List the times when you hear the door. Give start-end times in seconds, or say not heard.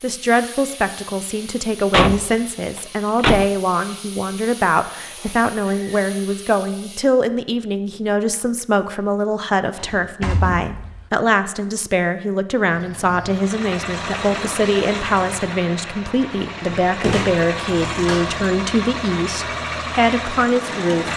1.9-3.5, 9.8-11.1, 16.7-18.4.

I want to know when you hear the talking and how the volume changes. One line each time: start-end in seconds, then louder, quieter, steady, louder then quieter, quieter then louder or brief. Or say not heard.
0.0-21.1 steady.